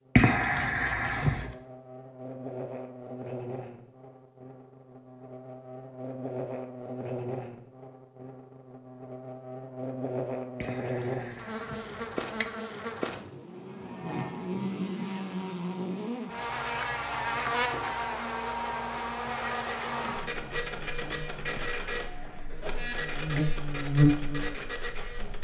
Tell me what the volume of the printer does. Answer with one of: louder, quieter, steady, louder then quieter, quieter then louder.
steady.